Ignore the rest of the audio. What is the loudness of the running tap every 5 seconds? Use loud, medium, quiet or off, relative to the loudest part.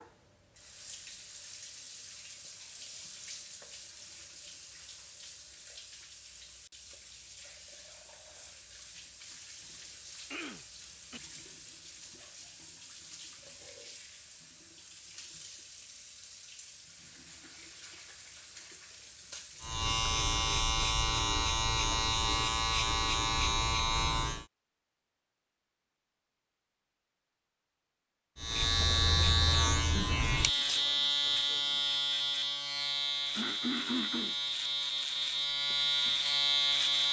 loud, loud, loud, loud, off, off, off, off.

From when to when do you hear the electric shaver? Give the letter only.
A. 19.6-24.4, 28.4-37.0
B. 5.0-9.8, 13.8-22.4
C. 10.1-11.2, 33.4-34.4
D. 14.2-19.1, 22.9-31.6
A.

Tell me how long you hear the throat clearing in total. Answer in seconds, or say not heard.
2 s.